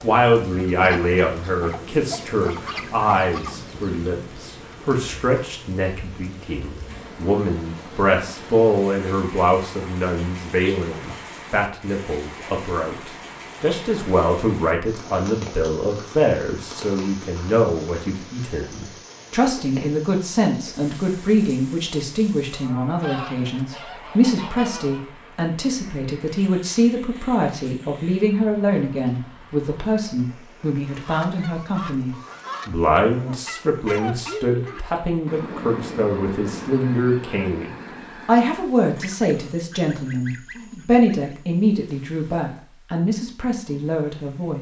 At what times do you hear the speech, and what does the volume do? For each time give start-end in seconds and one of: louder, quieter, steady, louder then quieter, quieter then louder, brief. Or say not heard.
0.0-44.5 steady.